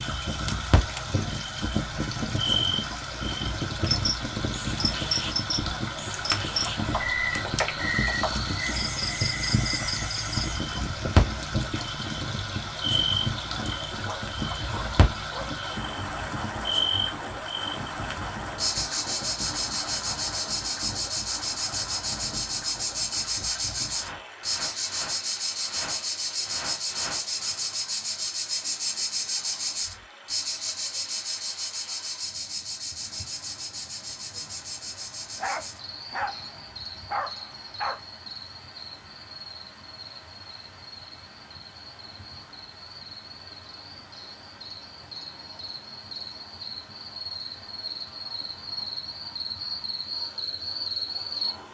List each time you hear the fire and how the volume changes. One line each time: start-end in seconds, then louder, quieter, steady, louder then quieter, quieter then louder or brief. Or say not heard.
0.0-27.6 quieter.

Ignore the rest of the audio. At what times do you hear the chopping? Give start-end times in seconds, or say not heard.
not heard.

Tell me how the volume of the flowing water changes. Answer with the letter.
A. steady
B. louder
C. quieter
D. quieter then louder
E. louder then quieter
C.